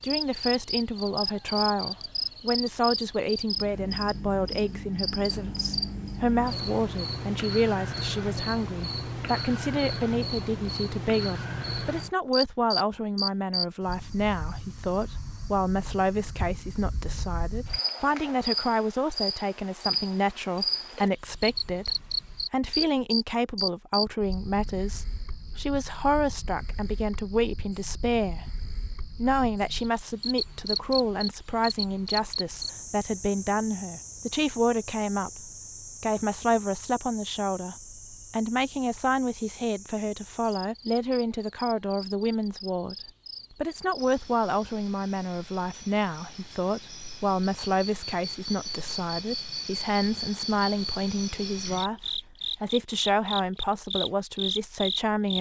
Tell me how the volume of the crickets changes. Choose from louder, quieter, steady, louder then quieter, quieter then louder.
quieter then louder.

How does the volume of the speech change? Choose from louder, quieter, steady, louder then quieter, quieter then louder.
steady.